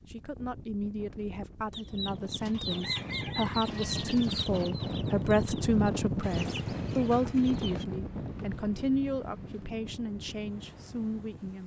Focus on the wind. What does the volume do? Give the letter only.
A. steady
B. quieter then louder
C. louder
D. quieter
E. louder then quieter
E.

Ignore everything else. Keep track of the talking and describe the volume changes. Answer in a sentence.
The volume of the talking goes up, then down.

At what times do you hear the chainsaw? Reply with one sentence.
You can't hear the chainsaw here.